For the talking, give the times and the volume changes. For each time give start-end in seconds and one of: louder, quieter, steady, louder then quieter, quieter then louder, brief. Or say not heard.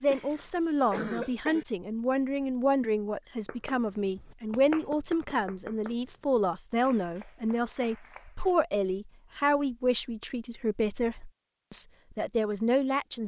0.0-13.2 steady.